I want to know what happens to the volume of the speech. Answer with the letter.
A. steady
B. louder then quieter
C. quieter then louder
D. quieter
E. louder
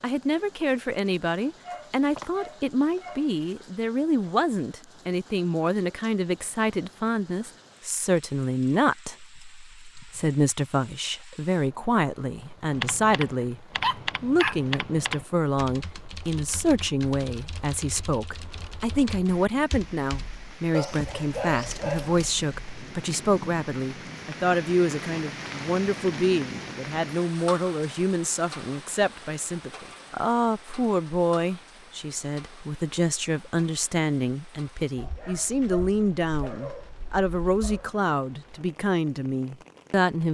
A.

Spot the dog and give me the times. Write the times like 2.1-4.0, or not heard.
1.6-3.5, 13.8-14.8, 20.7-22.4, 35.0-37.9.